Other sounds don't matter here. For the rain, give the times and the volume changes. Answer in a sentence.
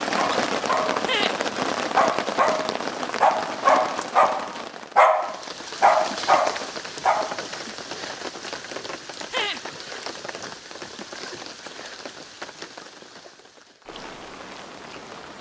The rain can be heard from 0.0 to 15.3 s, getting quieter.